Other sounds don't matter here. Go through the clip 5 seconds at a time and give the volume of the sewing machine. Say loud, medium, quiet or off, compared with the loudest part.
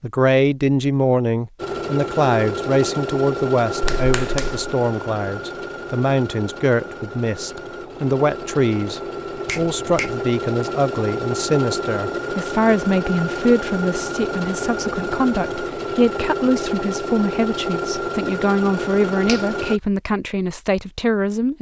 loud, medium, loud, loud, off.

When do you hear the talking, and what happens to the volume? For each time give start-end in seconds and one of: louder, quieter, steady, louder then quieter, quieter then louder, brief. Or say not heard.
0.0-21.5 steady.